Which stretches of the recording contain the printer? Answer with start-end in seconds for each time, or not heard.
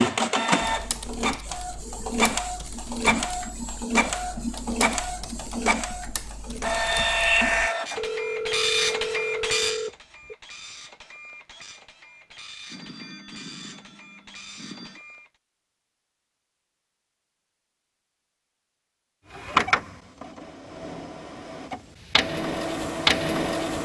0.0-15.3, 19.3-23.8.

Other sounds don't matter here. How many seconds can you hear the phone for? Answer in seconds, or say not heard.
5 s.